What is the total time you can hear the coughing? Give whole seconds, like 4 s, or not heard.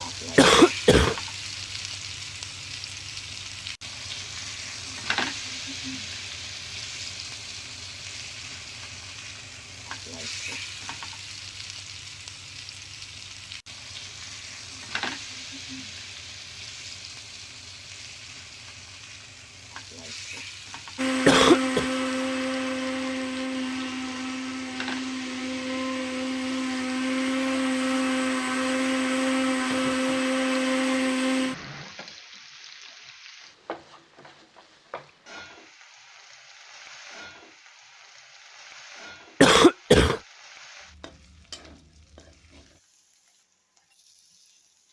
2 s.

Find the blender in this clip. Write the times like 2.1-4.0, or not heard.
20.9-31.9.